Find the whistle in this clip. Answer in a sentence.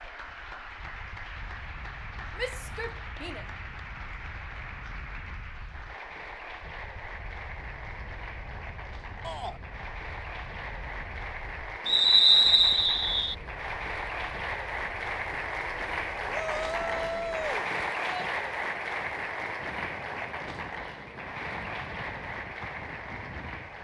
You can hear the whistle from 11.8 to 13.3 s.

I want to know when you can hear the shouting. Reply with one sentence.
You can hear the shouting from 2.4 to 3.5 s, from 9.2 to 9.6 s and from 16.3 to 18.3 s.